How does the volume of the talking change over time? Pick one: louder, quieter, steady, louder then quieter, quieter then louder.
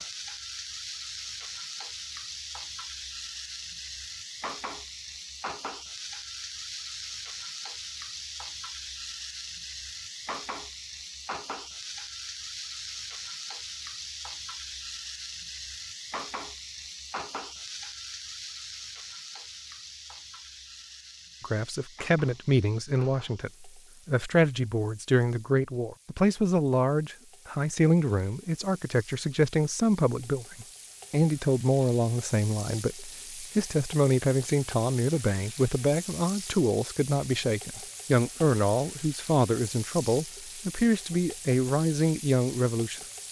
steady.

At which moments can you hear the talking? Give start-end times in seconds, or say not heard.
21.4-43.0.